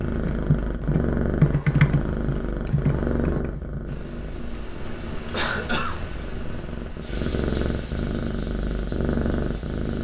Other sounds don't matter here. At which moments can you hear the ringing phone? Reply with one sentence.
You can't hear the ringing phone here.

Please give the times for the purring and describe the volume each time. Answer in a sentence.
The purring can be heard from 0.0 to 10.0 s, getting quieter then louder.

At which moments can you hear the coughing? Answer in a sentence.
The coughing can be heard from 5.3 to 6.0 s.